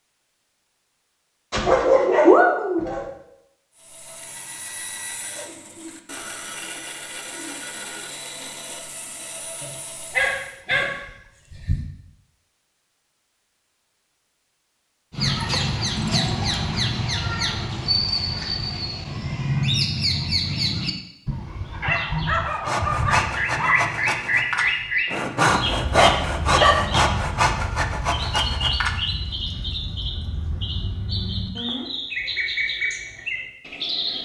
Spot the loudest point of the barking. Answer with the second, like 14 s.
2 s.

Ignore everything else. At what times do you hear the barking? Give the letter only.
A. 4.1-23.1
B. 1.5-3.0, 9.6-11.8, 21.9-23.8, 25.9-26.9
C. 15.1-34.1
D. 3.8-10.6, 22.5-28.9
B.